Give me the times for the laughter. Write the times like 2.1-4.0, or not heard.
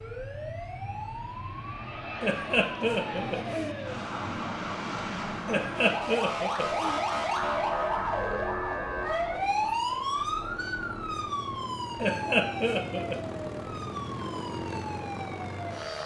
2.2-3.8, 5.5-7.0, 12.0-13.2.